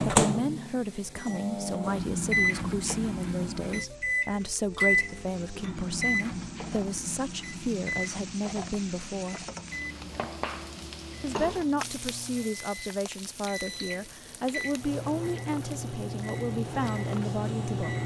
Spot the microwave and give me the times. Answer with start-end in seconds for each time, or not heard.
0.0-18.0.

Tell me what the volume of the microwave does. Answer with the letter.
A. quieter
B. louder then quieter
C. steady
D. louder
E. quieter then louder
E.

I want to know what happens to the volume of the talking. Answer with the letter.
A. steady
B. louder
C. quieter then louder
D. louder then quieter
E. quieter
A.